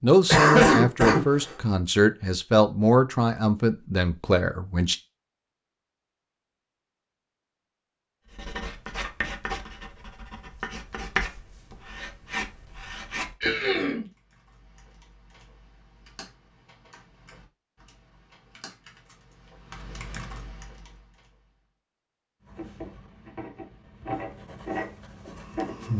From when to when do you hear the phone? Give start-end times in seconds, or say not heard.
not heard.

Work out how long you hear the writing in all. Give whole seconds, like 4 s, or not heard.
9 s.